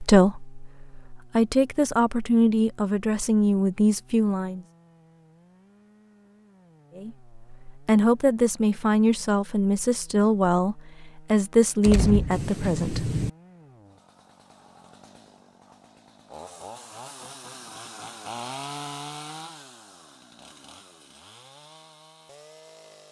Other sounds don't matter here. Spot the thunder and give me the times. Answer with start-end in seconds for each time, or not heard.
11.8-13.3.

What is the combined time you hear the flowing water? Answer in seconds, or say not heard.
not heard.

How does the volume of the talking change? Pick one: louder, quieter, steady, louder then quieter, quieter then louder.
steady.